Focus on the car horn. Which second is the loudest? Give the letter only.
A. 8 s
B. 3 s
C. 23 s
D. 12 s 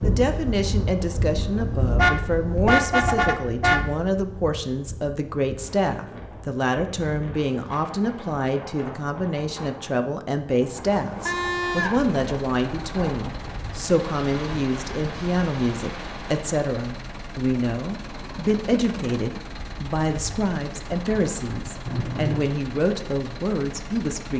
B.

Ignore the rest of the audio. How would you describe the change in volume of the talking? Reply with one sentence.
The loudness of the talking stays about the same.